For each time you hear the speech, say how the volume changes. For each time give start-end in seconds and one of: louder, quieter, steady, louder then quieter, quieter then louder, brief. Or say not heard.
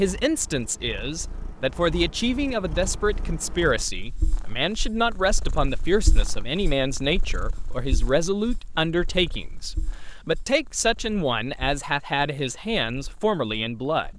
0.0-14.1 steady.